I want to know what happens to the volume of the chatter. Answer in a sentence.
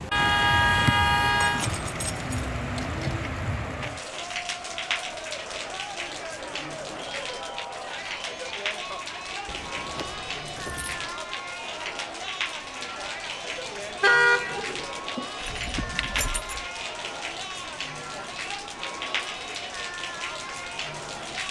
The volume of the chatter stays about the same.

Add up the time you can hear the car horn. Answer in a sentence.
The car horn can be heard for 3 seconds in total.